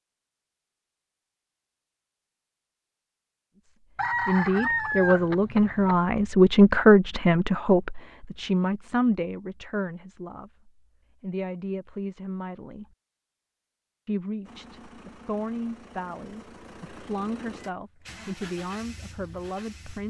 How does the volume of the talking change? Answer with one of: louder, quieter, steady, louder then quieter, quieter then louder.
quieter.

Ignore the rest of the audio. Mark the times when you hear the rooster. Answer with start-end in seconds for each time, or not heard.
4.0-6.0.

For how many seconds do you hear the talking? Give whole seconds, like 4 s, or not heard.
15 s.